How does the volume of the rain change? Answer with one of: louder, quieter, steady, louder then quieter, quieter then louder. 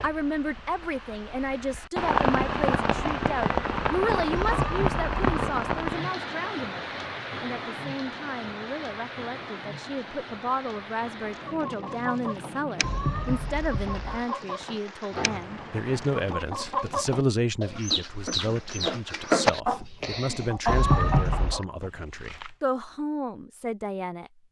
quieter.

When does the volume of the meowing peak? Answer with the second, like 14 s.
21 s.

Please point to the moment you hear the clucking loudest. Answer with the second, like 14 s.
19 s.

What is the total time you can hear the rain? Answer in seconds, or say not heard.
16 s.